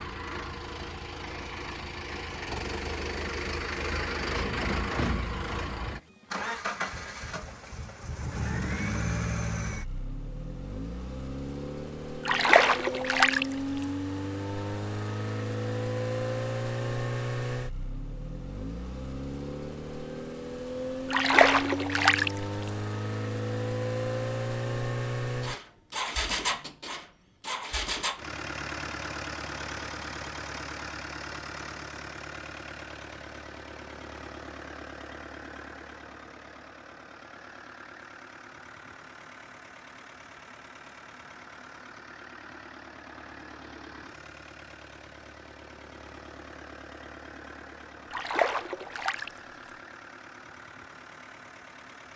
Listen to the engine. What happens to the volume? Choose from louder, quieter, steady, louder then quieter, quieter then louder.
quieter.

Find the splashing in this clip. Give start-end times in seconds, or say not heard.
12.2-13.4, 21.1-22.3, 48.1-49.3.